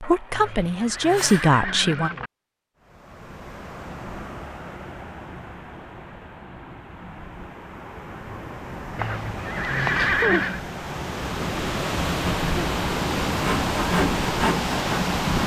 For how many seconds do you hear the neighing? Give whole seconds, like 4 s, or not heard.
4 s.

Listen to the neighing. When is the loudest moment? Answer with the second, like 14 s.
10 s.